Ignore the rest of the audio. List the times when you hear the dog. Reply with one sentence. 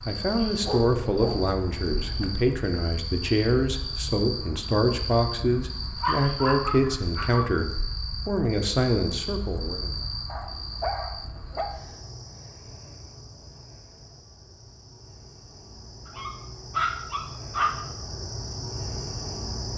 You can hear the dog from 0.6 to 2.4 s, from 6.0 to 7.5 s, from 10.2 to 11.8 s and from 16.1 to 17.8 s.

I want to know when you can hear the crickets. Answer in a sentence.
The crickets can be heard from 0.0 to 19.7 s.